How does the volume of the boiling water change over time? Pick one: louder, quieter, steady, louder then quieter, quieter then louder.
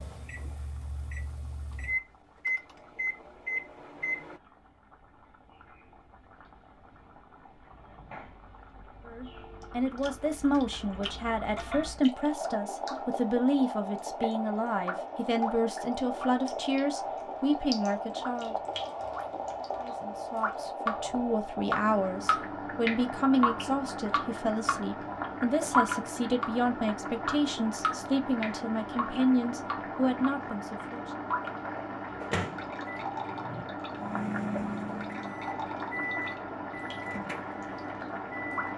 louder.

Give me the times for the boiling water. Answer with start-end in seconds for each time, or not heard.
0.0-38.7.